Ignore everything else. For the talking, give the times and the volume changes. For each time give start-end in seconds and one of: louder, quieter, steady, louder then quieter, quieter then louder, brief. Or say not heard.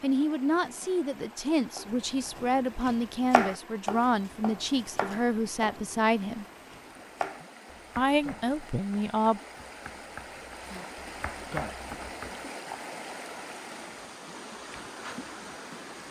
0.0-6.5 steady
8.0-9.4 brief.